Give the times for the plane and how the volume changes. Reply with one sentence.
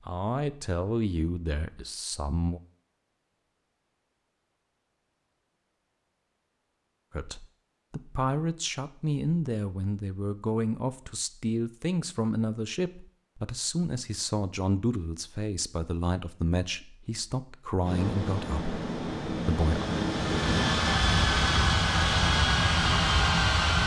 You can hear the plane from 17.8 to 23.8 s, getting louder.